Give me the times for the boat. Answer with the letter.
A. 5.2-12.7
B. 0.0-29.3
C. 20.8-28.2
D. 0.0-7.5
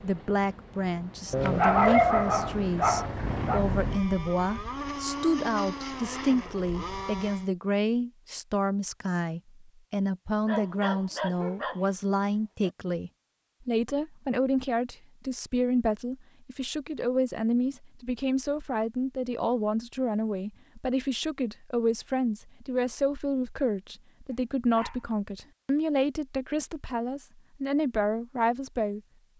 D.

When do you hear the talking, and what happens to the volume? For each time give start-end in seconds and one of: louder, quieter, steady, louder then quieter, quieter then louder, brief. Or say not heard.
0.0-29.3 steady.